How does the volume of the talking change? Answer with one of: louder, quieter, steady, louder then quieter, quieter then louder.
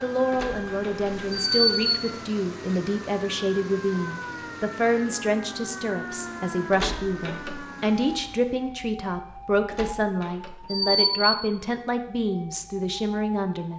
steady.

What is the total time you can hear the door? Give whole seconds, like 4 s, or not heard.
4 s.